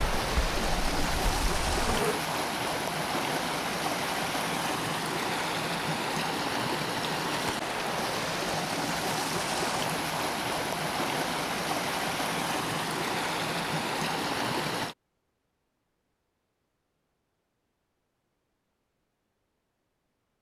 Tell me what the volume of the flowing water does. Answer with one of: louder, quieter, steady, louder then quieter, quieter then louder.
steady.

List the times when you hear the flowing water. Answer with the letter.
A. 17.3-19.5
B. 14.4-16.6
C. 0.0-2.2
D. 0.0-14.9
D.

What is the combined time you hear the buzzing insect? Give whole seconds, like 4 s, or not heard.
2 s.